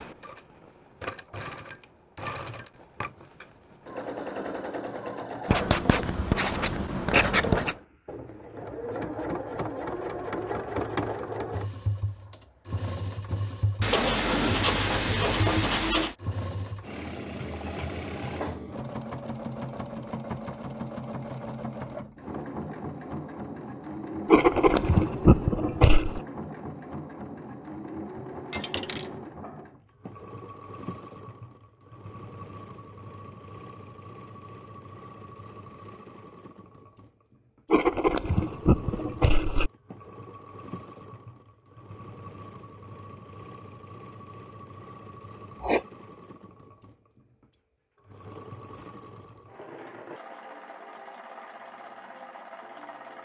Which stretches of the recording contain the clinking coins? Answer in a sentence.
The clinking coins can be heard from 28.5 to 29.1 s.